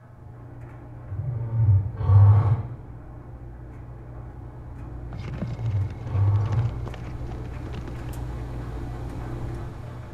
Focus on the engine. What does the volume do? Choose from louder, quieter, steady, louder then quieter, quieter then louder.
louder.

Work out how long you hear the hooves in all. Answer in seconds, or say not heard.
3 s.